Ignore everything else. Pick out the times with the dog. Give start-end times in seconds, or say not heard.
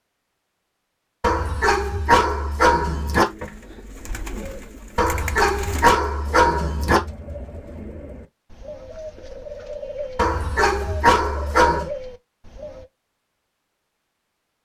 1.2-3.2, 5.0-7.0, 10.2-11.9.